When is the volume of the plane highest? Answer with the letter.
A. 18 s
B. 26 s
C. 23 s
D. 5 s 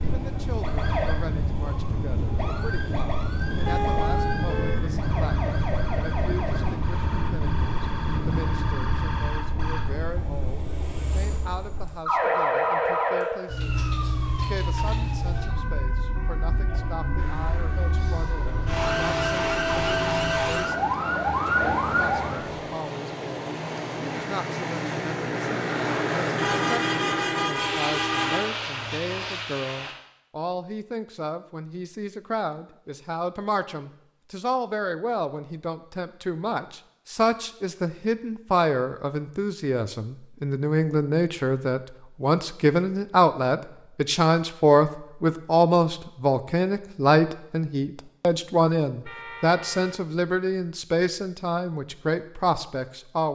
B.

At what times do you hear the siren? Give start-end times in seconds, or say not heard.
0.0-22.6.